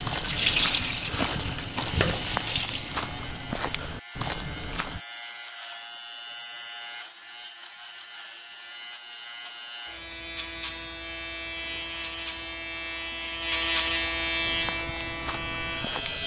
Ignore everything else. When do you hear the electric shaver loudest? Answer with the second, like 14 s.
14 s.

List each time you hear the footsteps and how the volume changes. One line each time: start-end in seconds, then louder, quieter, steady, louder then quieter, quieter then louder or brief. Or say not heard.
0.0-5.0 steady
14.4-16.2 brief.